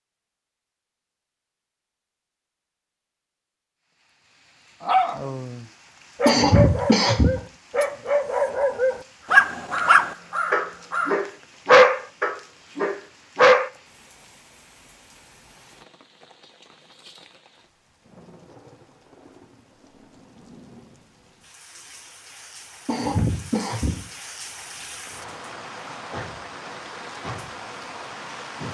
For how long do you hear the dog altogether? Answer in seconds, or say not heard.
9 s.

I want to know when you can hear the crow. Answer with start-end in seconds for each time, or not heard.
9.5-11.2.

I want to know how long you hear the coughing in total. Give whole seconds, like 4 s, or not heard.
2 s.